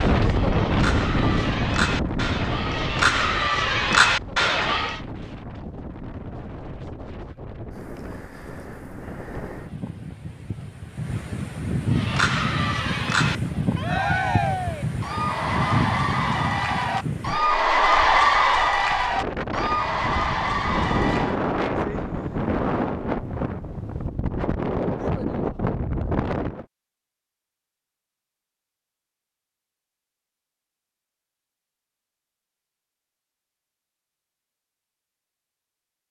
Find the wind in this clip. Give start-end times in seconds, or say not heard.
0.0-26.6.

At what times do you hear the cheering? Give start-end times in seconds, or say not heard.
0.0-5.0, 11.9-21.4.